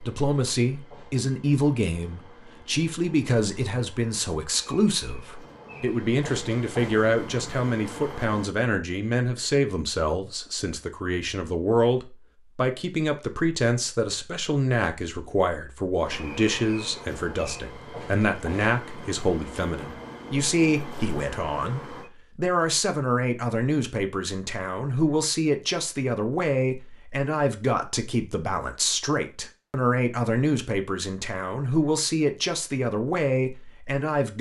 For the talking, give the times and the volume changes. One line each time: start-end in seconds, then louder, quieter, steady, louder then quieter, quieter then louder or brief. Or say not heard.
0.0-34.3 steady.